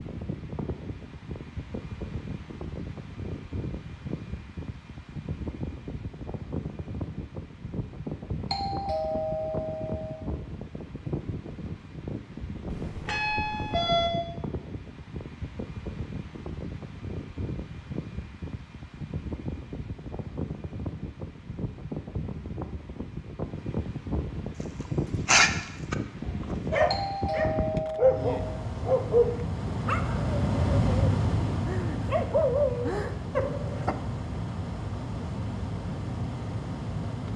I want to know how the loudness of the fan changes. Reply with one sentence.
The volume of the fan goes up.